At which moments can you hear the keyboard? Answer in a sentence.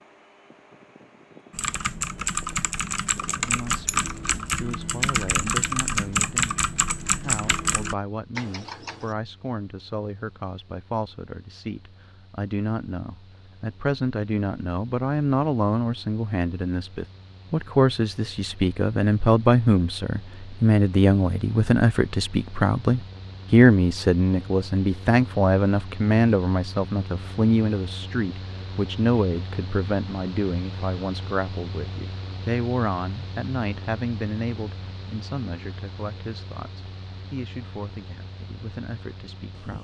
The keyboard can be heard from 1.5 to 9.2 s.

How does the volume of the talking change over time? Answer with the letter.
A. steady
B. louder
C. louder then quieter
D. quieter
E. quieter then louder
C.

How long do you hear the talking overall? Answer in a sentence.
The talking can be heard for 36 seconds in total.